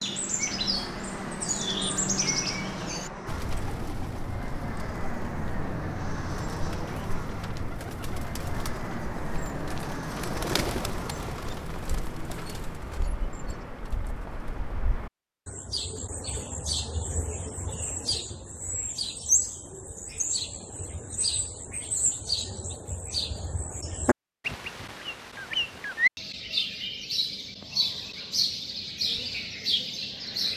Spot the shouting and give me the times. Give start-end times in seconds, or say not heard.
not heard.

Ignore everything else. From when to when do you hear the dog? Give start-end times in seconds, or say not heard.
not heard.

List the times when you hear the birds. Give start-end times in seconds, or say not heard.
0.0-30.5.